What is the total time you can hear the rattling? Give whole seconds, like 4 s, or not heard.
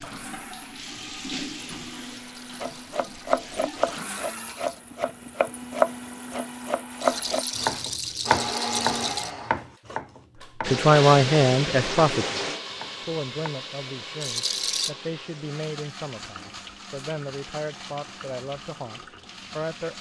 6 s.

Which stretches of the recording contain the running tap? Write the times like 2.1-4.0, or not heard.
0.0-4.0, 10.6-19.9.